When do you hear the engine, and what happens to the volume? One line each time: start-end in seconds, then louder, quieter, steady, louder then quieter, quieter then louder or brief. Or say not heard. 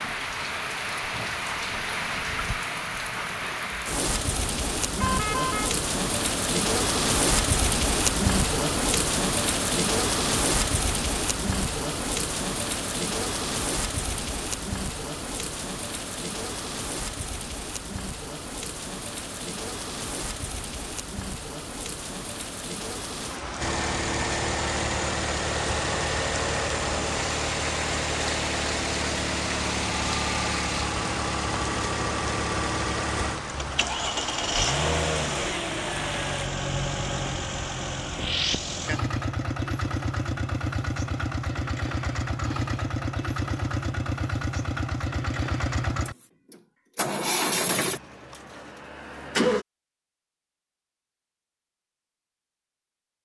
23.6-49.6 steady.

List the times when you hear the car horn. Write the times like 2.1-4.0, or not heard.
5.0-5.8.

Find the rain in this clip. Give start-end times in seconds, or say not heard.
0.0-36.5.